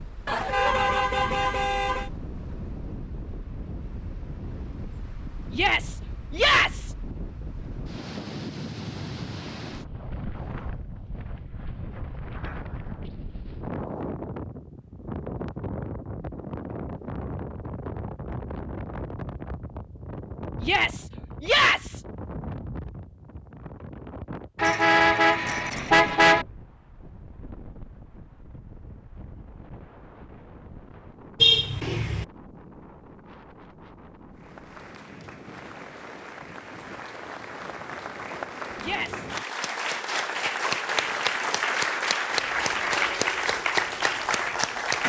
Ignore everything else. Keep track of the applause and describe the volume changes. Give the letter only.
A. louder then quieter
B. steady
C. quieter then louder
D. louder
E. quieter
D.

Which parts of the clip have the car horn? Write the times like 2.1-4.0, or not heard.
0.2-2.1, 24.6-26.4, 31.4-32.2.